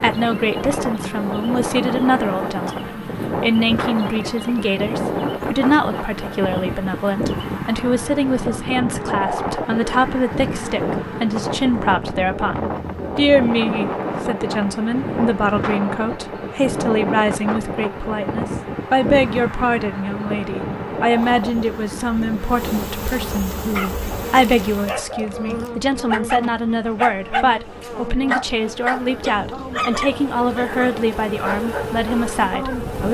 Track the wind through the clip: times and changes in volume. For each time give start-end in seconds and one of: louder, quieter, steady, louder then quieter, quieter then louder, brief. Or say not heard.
0.0-33.0 quieter.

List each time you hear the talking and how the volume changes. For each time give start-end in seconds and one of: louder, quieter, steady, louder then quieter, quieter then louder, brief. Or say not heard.
0.0-33.0 steady.